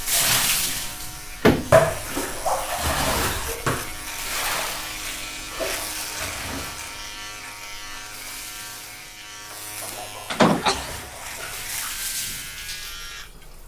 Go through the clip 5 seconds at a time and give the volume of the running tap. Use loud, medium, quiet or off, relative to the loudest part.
loud, quiet, quiet.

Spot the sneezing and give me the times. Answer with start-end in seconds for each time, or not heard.
9.9-10.9.